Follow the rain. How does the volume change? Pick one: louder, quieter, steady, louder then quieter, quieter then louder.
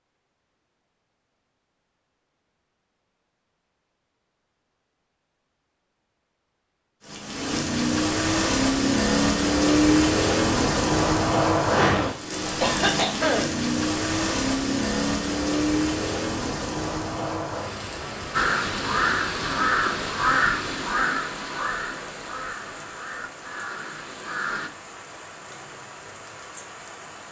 quieter.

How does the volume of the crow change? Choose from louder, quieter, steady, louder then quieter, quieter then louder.
quieter.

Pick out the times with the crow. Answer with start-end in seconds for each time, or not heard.
18.3-24.7.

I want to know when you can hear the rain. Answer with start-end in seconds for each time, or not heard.
7.0-27.2.